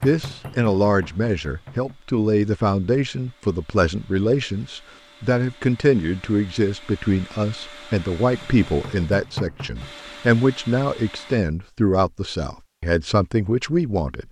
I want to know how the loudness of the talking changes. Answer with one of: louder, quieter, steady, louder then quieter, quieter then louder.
steady.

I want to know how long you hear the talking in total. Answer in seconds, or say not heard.
14 s.